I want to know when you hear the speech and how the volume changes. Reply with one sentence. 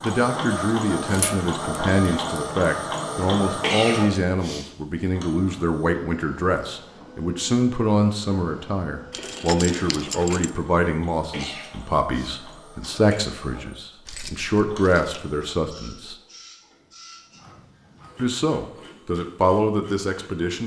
The speech can be heard from 0.0 to 16.1 s, at a steady volume; and briefly from 18.1 to 20.6 s.